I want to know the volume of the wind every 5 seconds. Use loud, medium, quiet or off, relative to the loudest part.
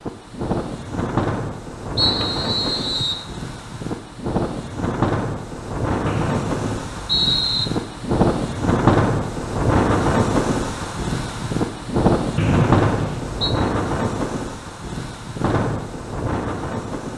medium, loud, loud, medium.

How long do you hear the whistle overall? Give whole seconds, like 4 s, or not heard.
4 s.